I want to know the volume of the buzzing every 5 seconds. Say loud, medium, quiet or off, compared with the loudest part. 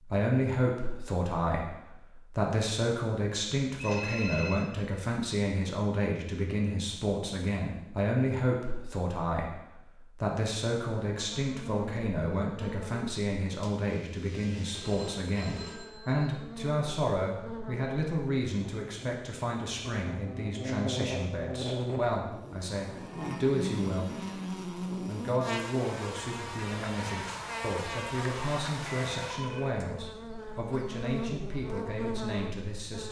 off, off, medium, medium, loud, loud, loud.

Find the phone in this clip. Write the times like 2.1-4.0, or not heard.
3.8-4.7, 14.6-16.2, 28.8-29.9.